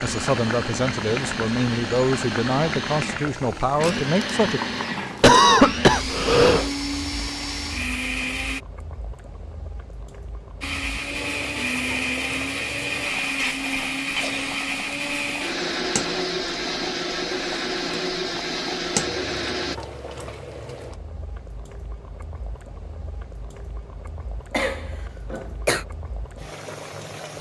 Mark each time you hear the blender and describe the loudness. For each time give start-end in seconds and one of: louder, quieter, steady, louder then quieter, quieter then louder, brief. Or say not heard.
0.0-8.6 steady
10.6-19.8 steady.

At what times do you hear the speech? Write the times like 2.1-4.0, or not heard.
0.0-4.6.